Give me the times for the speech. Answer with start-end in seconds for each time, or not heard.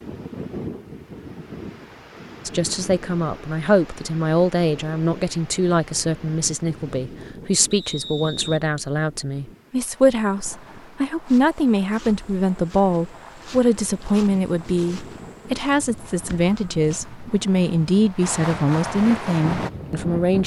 2.5-20.4.